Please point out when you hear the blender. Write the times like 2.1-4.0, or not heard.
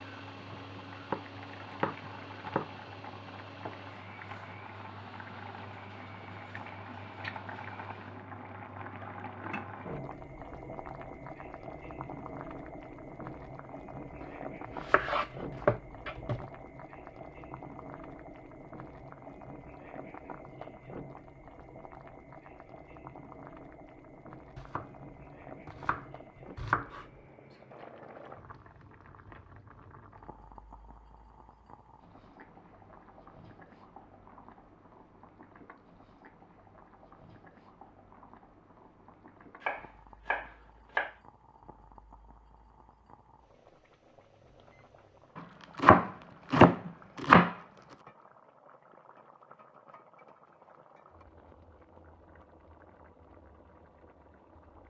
0.0-8.3.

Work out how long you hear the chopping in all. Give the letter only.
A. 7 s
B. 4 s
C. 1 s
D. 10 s
D.